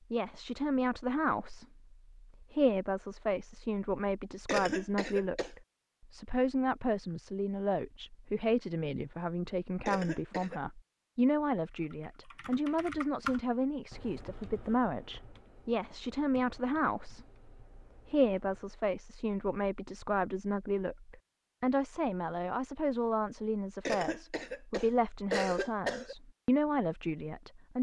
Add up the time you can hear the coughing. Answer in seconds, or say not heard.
4 s.